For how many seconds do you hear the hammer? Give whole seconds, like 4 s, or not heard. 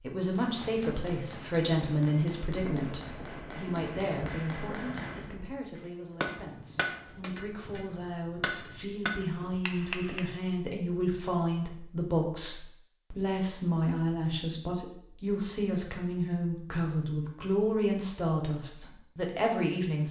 10 s.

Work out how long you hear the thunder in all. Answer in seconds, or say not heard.
3 s.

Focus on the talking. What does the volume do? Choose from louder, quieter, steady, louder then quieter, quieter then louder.
quieter then louder.